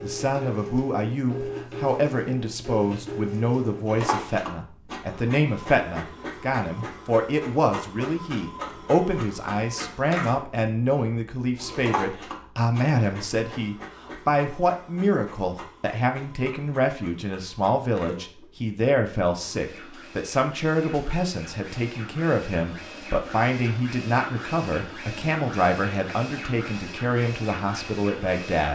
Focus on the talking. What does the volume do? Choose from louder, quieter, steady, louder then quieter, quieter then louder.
steady.